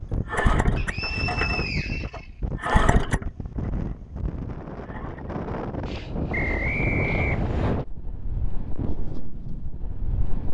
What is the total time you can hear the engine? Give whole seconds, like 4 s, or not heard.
5 s.